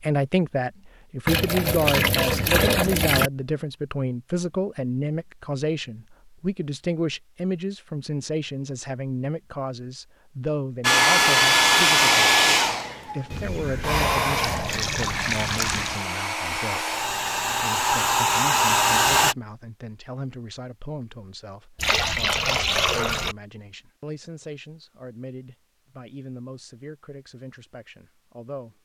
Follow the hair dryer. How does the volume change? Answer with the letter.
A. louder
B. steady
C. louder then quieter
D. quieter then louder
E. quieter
D.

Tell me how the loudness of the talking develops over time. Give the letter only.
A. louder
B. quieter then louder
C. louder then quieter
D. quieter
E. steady
D.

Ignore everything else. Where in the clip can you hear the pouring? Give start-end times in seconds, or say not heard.
1.2-3.3, 13.3-16.0, 21.8-23.4.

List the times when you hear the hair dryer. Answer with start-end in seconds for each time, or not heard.
10.8-19.4.